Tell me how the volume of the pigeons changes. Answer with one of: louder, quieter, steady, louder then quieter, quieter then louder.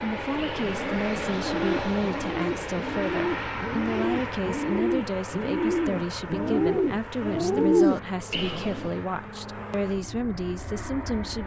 louder.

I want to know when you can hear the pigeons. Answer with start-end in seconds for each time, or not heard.
0.4-8.9.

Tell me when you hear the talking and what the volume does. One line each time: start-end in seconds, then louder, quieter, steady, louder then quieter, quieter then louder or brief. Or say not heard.
0.0-11.4 steady.